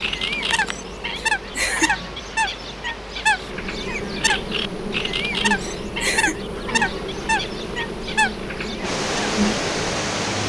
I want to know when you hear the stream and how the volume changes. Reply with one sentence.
You can hear the stream from 0.0 to 10.4 s, getting louder.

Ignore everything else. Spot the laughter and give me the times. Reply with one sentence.
The laughter can be heard from 1.1 to 1.9 s and from 5.6 to 6.3 s.